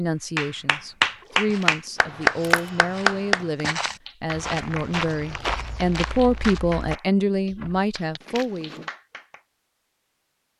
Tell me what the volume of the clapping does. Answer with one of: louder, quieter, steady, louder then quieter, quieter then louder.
quieter.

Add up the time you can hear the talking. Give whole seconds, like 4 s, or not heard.
9 s.